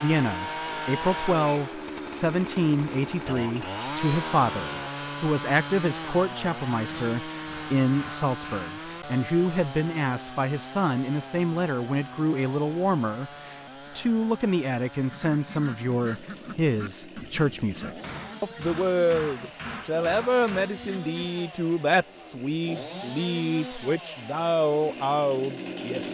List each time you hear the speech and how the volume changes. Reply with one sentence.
The speech can be heard from 0.0 to 26.0 s, at a steady volume.